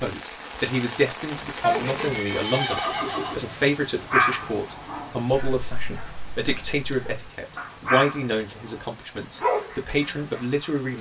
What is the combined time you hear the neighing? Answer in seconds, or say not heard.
2 s.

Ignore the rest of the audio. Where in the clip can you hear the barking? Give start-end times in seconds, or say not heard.
4.1-10.7.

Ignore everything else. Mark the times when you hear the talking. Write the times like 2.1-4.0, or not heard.
0.0-10.9.